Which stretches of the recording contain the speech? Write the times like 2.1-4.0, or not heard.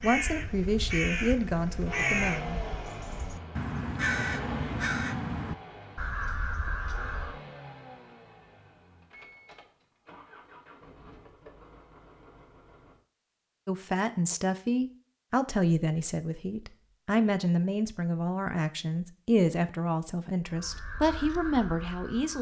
0.0-2.6, 13.7-22.3.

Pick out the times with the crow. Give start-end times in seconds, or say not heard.
0.0-7.4, 20.4-22.3.